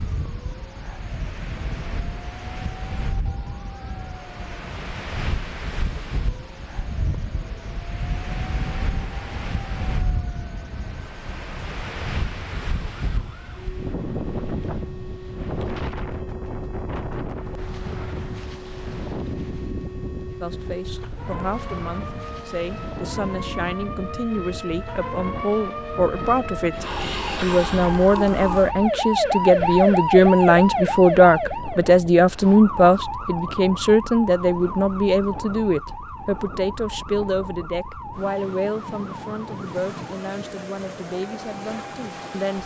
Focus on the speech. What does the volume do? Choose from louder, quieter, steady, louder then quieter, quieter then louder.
louder then quieter.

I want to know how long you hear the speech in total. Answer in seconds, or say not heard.
22 s.